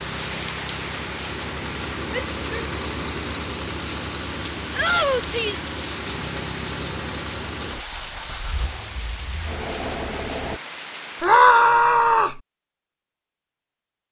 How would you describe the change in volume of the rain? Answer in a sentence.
The loudness of the rain stays about the same.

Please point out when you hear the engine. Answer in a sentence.
You can hear the engine from 0.0 to 10.6 s.